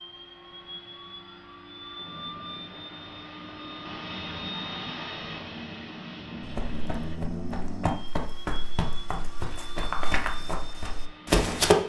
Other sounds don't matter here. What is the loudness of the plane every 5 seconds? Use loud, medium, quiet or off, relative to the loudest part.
loud, loud, medium.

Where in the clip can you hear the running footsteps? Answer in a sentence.
You can hear the running footsteps from 6.4 to 11.8 s.